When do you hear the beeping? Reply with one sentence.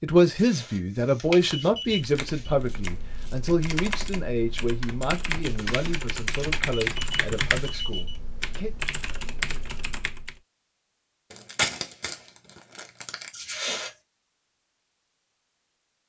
You can hear the beeping from 0.3 to 2.5 s, from 5.5 to 8.2 s and from 13.3 to 13.9 s.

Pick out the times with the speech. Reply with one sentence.
The speech can be heard from 0.0 to 8.8 s.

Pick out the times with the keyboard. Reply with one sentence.
You can hear the keyboard from 1.9 to 10.4 s.